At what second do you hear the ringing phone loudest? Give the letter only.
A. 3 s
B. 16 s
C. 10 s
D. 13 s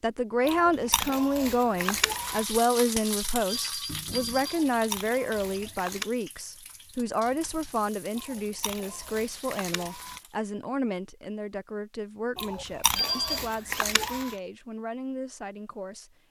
D.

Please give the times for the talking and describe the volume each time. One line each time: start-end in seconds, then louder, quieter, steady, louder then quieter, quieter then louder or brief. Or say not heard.
0.0-16.2 quieter.